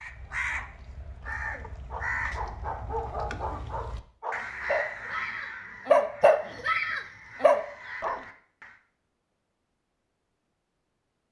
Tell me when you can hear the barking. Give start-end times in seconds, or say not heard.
1.9-8.2.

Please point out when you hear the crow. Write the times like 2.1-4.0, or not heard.
0.0-8.8.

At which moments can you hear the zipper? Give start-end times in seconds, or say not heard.
not heard.